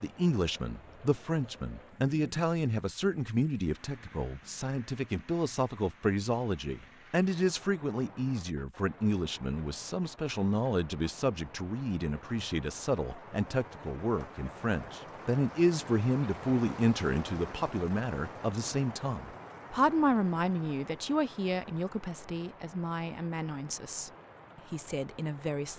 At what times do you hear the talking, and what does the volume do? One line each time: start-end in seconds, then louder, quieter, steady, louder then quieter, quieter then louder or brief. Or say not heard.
0.0-24.1 steady
24.7-25.7 brief.